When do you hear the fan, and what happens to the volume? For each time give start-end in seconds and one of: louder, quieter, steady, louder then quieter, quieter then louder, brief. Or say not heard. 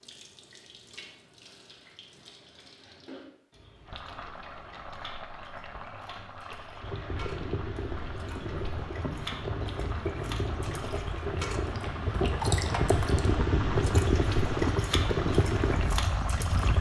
6.8-16.7 louder.